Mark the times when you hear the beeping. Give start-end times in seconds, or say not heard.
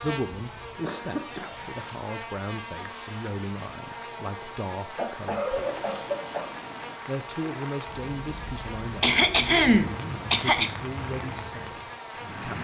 not heard.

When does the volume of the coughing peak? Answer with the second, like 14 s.
10 s.